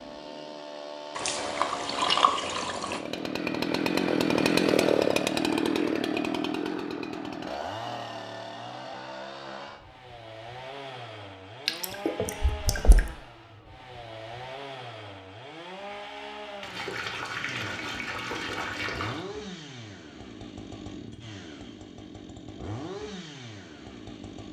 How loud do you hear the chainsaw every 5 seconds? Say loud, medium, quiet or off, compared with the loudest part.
loud, loud, quiet, quiet, quiet.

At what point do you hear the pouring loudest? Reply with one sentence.
The volume of the pouring peaks at 2 seconds.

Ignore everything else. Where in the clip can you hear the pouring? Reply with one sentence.
You can hear the pouring from 1.1 to 3.0 s, from 11.7 to 13.1 s and from 16.6 to 19.2 s.